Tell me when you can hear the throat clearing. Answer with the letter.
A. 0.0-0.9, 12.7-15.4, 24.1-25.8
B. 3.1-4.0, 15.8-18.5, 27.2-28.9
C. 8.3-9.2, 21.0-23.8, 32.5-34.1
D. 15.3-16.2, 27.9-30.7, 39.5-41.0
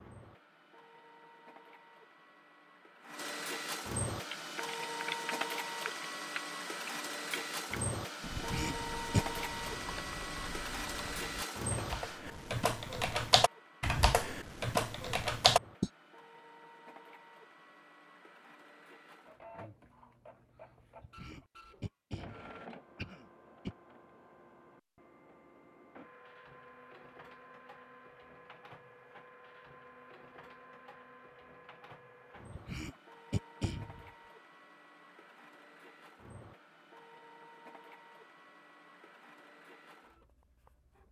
C.